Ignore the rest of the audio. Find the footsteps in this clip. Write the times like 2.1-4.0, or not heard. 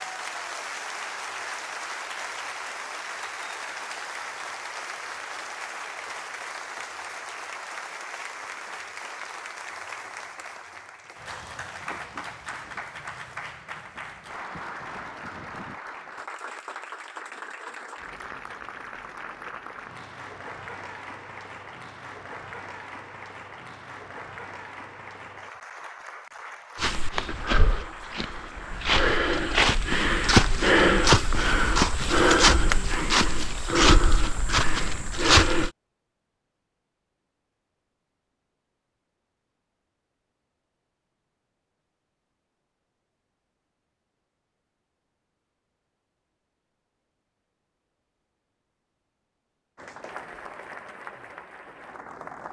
26.8-35.7.